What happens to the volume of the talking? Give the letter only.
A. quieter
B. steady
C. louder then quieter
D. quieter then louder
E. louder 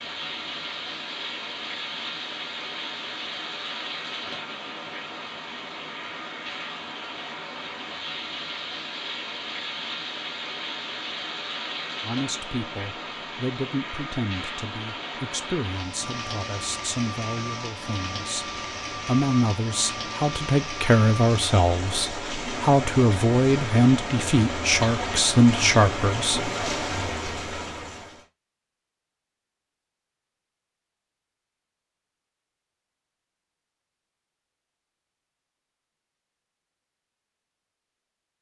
E.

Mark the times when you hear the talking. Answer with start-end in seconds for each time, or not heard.
12.0-26.4.